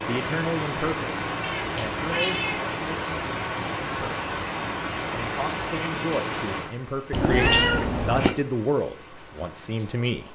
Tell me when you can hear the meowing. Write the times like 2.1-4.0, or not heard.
1.4-2.7, 7.1-8.3.